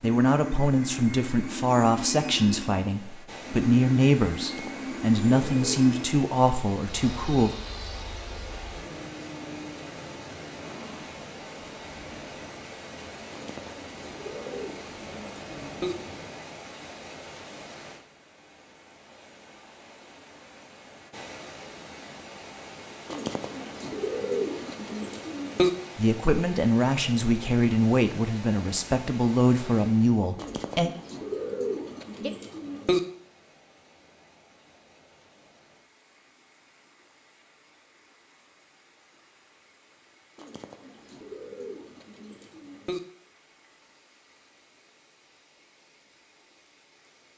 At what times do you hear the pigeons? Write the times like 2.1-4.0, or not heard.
4.4-5.8, 13.3-15.9, 23.1-25.7, 30.4-33.0, 40.4-43.0.